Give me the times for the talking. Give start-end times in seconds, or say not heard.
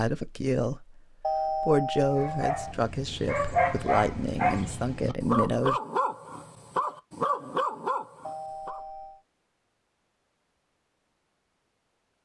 0.0-5.8.